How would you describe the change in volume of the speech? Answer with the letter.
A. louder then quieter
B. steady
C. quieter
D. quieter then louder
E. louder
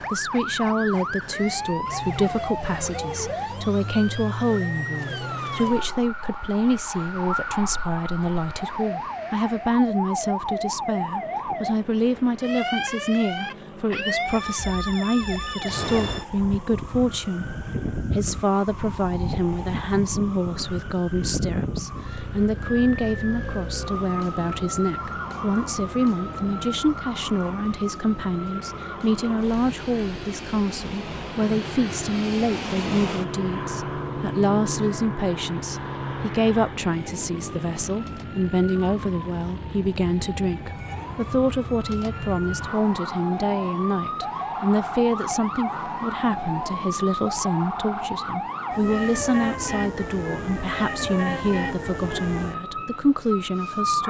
B.